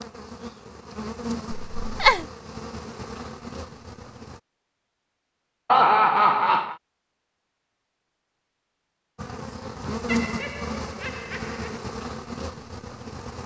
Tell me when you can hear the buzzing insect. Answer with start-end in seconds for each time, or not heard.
0.0-4.4, 9.2-13.4.